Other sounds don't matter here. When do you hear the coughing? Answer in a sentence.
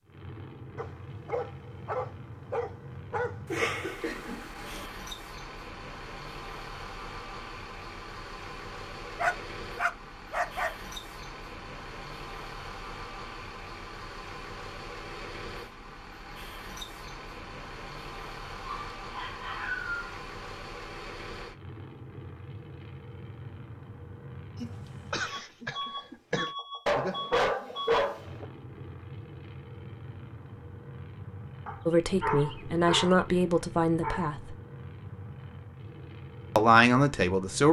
The coughing can be heard from 3.5 to 4.9 s and from 24.6 to 26.6 s.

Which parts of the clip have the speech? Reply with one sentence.
The speech can be heard from 31.9 to 34.5 s and from 36.5 to 37.6 s.